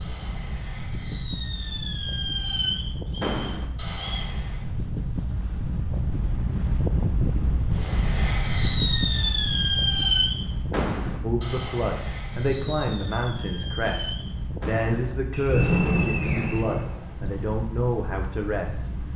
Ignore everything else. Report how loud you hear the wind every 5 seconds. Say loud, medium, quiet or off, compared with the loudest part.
medium, loud, medium, medium.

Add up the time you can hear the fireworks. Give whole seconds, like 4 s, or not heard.
14 s.